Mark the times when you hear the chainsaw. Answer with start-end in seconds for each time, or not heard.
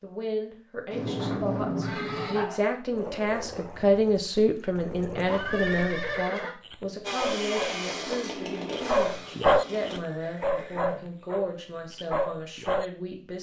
7.0-10.0.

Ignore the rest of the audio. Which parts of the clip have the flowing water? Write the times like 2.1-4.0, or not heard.
not heard.